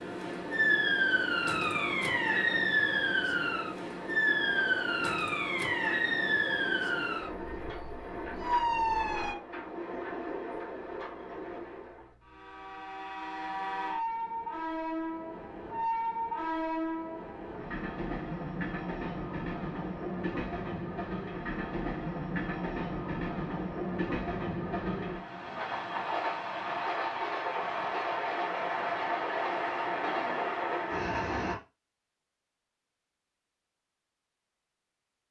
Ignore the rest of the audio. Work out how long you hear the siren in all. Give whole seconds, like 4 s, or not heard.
9 s.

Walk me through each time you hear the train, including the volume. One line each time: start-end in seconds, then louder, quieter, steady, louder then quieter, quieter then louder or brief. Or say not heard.
0.0-31.6 louder.